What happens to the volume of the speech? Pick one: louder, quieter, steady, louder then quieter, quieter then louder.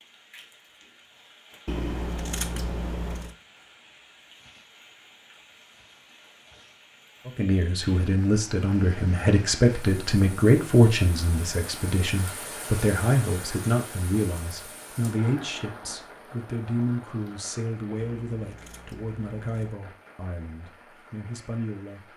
quieter.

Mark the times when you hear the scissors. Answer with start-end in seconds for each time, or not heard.
1.6-3.4, 18.0-19.8.